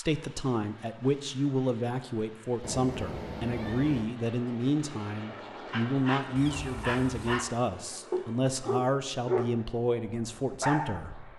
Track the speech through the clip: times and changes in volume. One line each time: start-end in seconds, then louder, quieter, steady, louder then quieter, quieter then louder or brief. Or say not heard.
0.0-11.3 steady.